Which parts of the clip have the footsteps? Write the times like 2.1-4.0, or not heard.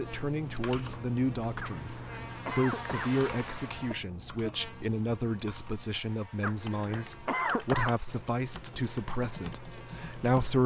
not heard.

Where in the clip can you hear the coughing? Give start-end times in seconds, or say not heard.
1.6-3.1, 6.4-8.0.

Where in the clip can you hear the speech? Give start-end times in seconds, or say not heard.
0.0-10.6.